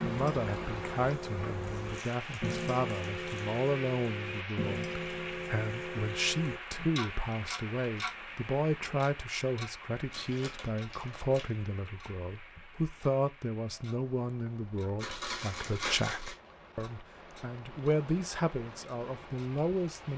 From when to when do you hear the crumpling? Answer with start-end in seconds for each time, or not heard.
1.6-3.5, 10.1-11.7, 14.9-16.4.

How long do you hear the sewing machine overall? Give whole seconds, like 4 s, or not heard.
not heard.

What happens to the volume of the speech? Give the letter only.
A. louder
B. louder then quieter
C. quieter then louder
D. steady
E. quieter
D.